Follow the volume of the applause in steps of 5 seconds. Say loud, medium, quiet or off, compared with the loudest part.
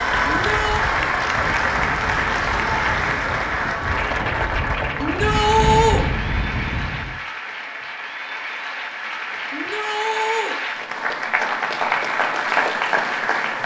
loud, medium, loud.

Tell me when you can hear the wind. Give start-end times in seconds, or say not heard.
0.0-7.2.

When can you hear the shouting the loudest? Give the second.
6 s.